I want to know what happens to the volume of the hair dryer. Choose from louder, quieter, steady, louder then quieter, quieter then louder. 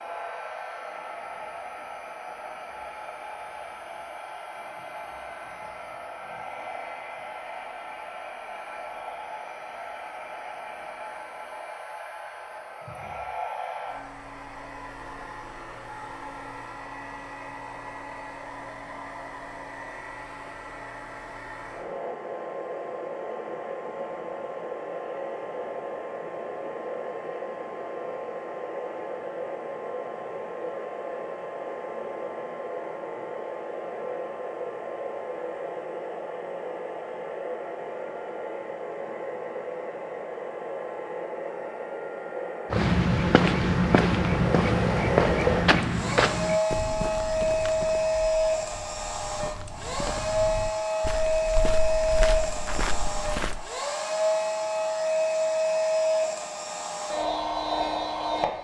louder.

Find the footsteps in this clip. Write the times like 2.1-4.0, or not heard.
42.7-53.6.